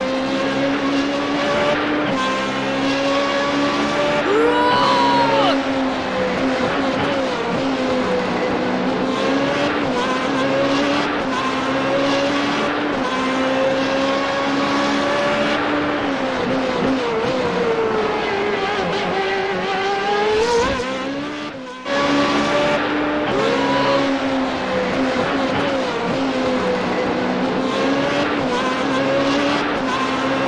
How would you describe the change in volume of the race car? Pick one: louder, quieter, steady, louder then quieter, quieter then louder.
steady.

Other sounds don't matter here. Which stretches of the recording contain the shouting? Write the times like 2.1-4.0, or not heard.
4.2-5.7, 23.2-24.0.